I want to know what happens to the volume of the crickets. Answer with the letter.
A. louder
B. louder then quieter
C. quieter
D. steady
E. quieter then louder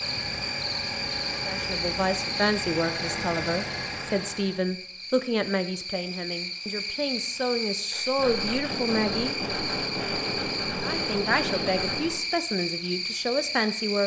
E.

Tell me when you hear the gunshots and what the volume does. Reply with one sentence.
You can hear the gunshots from 7.9 to 12.2 s, at a steady volume.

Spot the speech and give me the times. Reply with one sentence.
You can hear the speech from 1.4 to 9.3 s and from 10.8 to 14.0 s.